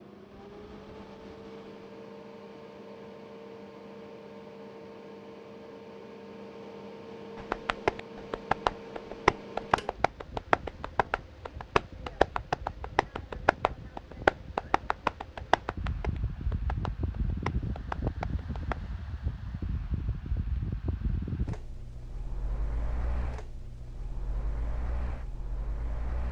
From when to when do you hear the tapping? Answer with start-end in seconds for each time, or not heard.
7.3-18.9.